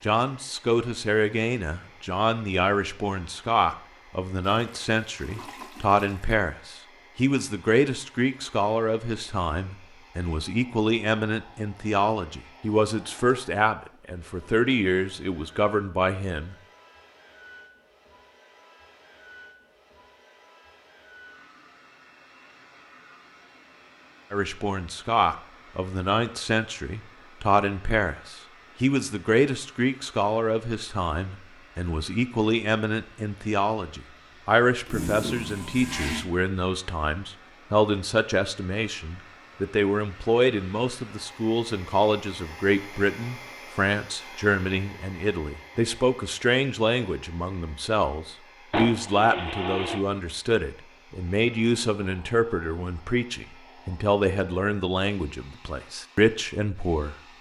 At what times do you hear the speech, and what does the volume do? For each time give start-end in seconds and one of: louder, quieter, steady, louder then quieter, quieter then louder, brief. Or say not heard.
0.0-16.6 steady
24.3-57.1 steady.